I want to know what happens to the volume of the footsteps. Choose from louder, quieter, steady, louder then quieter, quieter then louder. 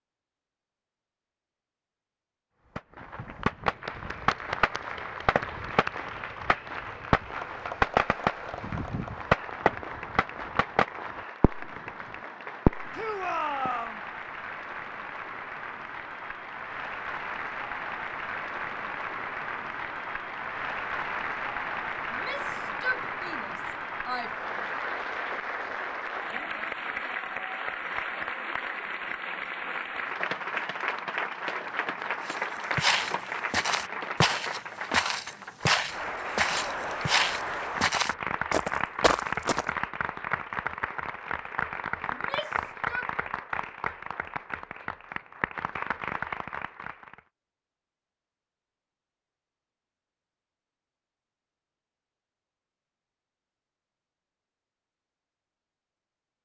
steady.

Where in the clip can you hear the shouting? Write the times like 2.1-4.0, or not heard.
12.9-14.0, 22.1-24.5, 42.1-43.1.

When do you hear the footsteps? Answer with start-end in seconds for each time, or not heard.
32.2-39.7.